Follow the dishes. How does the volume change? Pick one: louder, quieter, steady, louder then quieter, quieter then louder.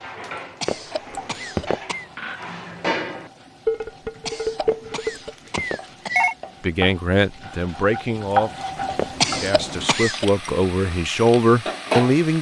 louder.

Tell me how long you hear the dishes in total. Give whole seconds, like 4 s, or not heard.
5 s.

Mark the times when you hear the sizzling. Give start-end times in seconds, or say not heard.
0.0-12.3.